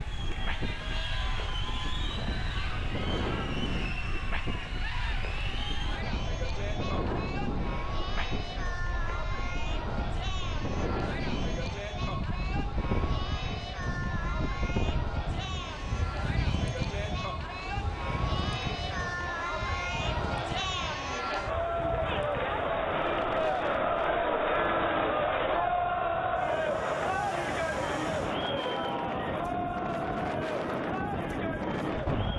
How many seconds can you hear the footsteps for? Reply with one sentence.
The footsteps can't be heard in this clip.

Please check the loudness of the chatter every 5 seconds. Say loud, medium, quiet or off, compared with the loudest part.
medium, medium, medium, medium, loud, loud, medium.